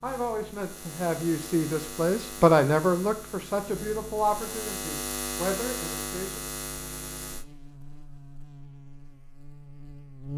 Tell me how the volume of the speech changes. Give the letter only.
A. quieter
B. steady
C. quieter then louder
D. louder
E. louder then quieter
E.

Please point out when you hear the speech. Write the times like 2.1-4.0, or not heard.
0.0-6.4.